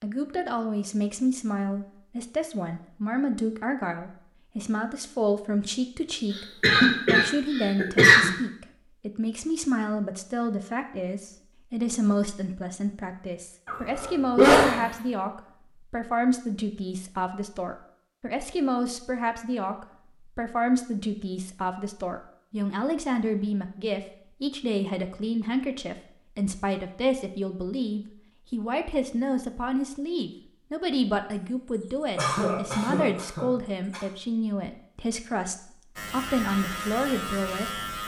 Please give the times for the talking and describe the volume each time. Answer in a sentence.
The talking can be heard from 0.0 to 37.8 s, at a steady volume.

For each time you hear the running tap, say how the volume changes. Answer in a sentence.
You can't hear the running tap here.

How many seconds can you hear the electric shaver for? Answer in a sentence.
The electric shaver can be heard for 2 seconds in total.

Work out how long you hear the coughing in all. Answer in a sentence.
The coughing can be heard for 5 seconds in total.